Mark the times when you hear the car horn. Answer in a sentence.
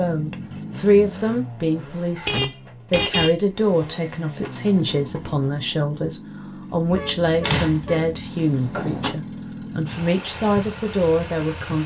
You can hear the car horn from 2.1 to 3.4 s and from 6.9 to 8.1 s.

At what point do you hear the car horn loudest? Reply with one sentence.
The volume of the car horn peaks at 3 seconds.